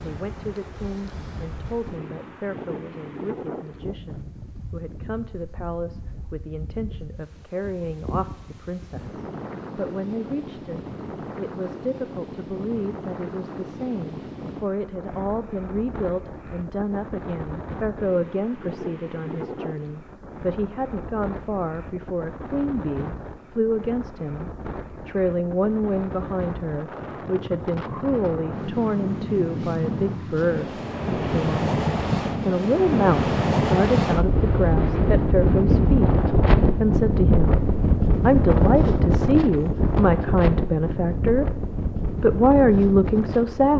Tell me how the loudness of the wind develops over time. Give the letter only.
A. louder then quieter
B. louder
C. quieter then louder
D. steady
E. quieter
B.